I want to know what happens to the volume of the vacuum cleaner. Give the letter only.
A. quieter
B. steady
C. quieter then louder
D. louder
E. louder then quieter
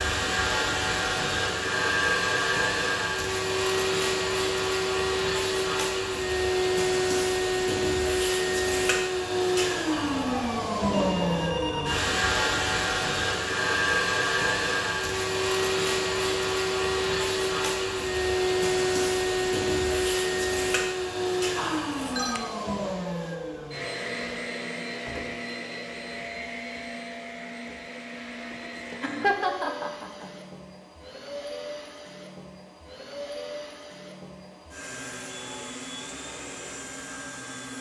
A.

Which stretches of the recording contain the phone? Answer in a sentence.
The phone can be heard from 9.9 to 12.0 s and from 21.6 to 22.4 s.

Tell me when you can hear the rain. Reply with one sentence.
You can't hear the rain here.